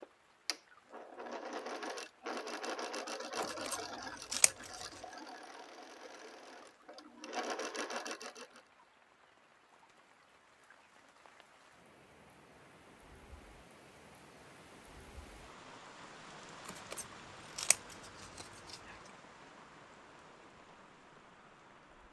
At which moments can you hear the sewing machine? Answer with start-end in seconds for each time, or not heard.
0.0-8.6.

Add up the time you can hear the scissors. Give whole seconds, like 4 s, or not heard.
4 s.